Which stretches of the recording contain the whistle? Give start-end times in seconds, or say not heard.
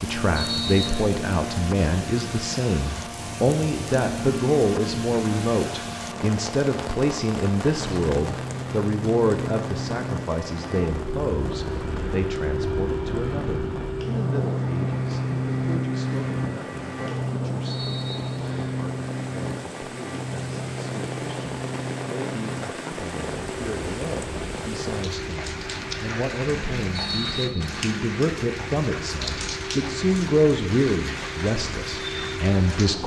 0.3-1.1, 17.6-18.8, 26.9-27.8.